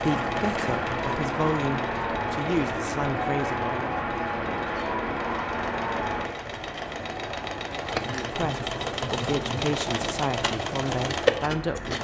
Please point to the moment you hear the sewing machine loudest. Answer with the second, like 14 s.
11 s.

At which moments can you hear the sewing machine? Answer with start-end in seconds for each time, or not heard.
0.0-11.9.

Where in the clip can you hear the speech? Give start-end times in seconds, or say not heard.
0.0-4.0, 8.1-11.9.